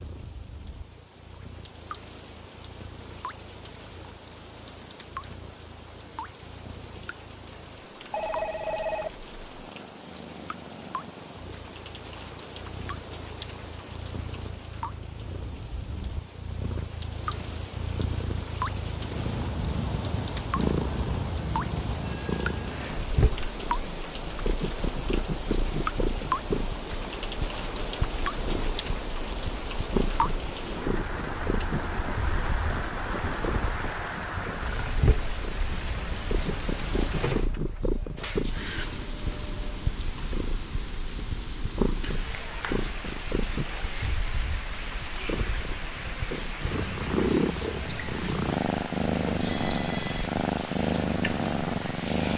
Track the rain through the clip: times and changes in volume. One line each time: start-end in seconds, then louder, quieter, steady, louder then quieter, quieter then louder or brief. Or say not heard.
0.0-52.3 louder.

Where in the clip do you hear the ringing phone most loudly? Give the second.
50 s.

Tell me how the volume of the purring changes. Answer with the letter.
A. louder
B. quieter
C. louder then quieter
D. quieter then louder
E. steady
A.